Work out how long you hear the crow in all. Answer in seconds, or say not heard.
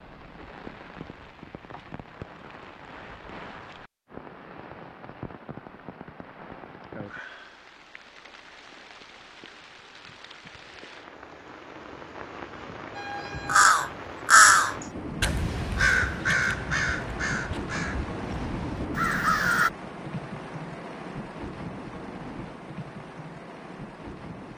7 s.